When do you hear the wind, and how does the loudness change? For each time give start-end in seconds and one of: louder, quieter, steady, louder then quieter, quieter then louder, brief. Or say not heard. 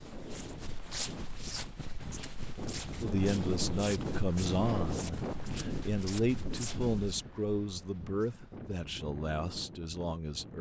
0.0-10.5 louder then quieter.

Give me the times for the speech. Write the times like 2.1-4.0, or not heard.
3.0-10.5.